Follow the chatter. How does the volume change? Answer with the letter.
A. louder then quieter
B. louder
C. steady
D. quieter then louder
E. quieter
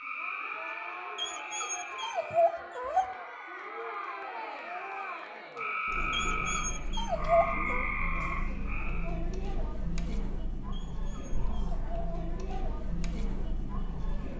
C.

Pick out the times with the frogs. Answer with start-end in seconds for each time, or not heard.
0.0-9.2.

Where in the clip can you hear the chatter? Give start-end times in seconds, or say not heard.
0.0-14.3.